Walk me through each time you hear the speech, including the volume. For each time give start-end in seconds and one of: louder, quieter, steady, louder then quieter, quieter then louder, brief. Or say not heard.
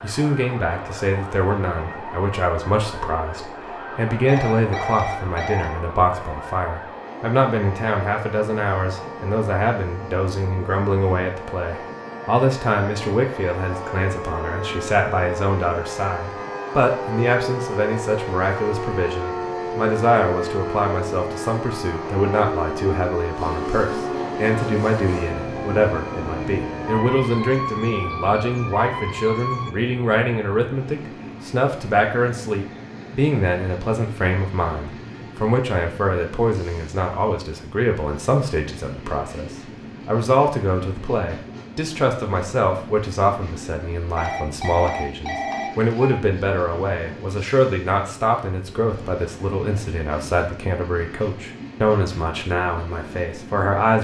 0.0-53.9 steady.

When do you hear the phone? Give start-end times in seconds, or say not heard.
4.2-5.8, 44.1-46.1.